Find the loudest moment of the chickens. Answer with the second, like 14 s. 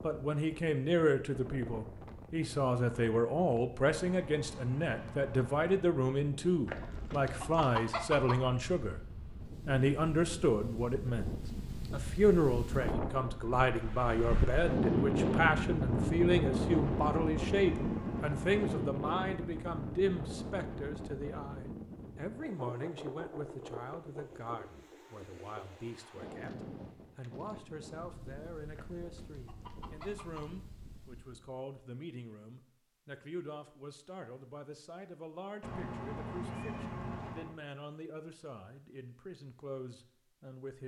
8 s.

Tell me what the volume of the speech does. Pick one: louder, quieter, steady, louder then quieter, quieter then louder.
quieter.